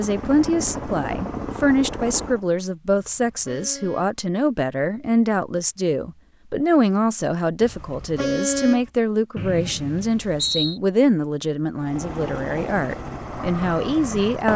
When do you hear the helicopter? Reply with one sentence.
The helicopter can be heard from 0.0 to 2.5 s and from 11.8 to 14.5 s.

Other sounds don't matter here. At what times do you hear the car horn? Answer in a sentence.
You can hear the car horn from 2.9 to 4.2 s and from 7.6 to 8.9 s.